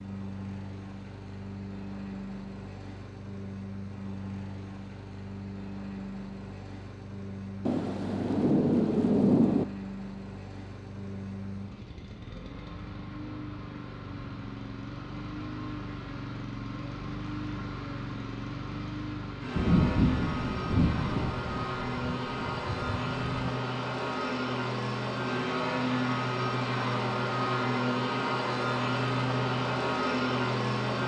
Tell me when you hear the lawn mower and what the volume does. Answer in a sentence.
You can hear the lawn mower from 0.0 to 31.0 s, getting louder.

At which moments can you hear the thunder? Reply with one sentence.
The thunder can be heard from 7.7 to 9.7 s and from 19.6 to 23.4 s.